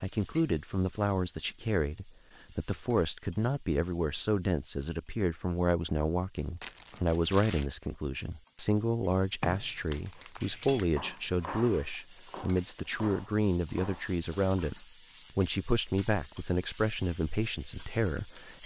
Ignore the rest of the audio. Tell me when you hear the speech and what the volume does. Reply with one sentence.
You can hear the speech from 0.0 to 18.6 s, at a steady volume.